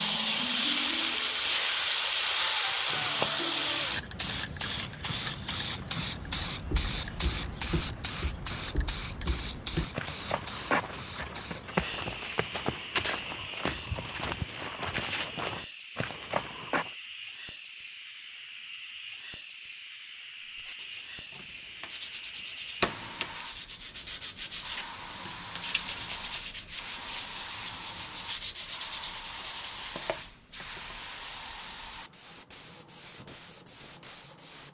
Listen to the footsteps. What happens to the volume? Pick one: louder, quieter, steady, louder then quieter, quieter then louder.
louder.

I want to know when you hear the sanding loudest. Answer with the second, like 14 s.
23 s.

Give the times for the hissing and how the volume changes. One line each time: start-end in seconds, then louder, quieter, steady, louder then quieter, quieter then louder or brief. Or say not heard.
0.0-34.7 quieter.